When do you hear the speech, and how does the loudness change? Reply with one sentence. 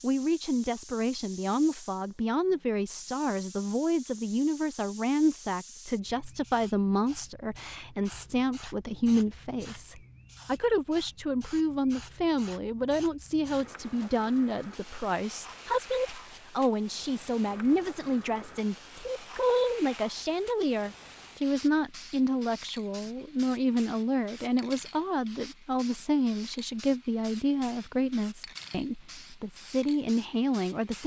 You can hear the speech from 0.0 to 31.0 s, at a steady volume.